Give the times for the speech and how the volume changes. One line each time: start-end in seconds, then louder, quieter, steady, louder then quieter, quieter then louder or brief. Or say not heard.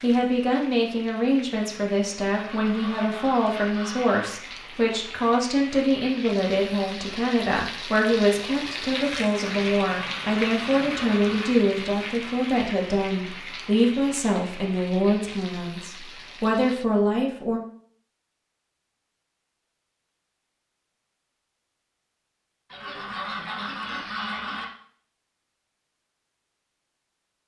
0.0-17.6 steady.